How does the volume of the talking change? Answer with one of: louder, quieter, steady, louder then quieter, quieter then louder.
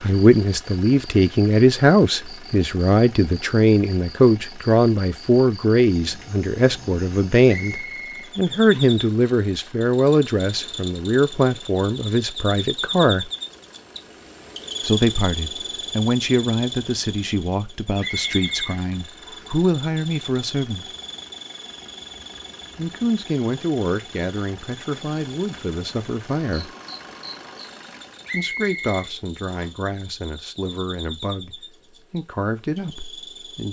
quieter.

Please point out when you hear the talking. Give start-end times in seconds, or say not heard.
0.0-13.3, 14.8-20.9, 22.8-26.7, 28.3-33.6.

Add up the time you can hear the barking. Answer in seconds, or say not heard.
not heard.